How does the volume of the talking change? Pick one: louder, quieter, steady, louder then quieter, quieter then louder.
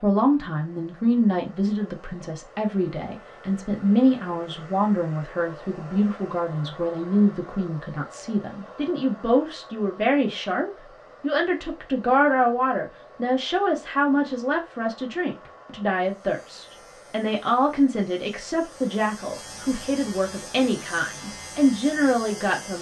steady.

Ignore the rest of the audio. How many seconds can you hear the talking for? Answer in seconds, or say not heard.
23 s.